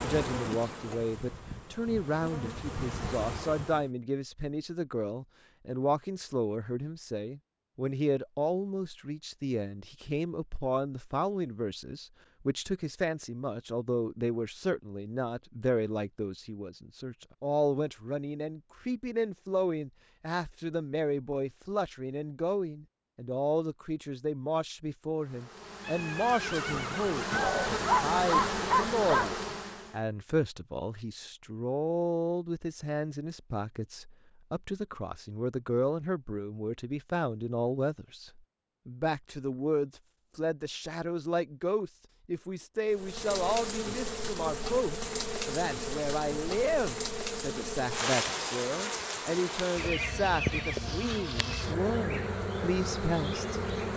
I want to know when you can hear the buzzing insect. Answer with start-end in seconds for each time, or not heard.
0.0-3.9, 25.1-30.0, 42.9-53.9.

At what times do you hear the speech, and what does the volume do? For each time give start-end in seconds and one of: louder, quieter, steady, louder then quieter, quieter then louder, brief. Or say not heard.
0.0-53.9 steady.